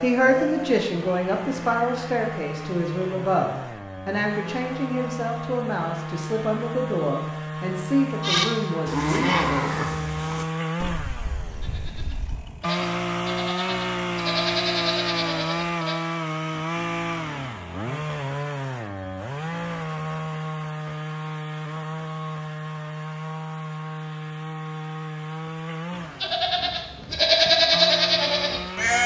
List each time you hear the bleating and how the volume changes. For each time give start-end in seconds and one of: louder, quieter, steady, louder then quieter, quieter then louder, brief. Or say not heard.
8.2-15.9 quieter then louder
26.2-29.0 brief.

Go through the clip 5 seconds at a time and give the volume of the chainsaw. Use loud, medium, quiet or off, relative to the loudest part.
medium, loud, loud, loud, loud, medium.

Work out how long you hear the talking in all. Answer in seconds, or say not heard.
9 s.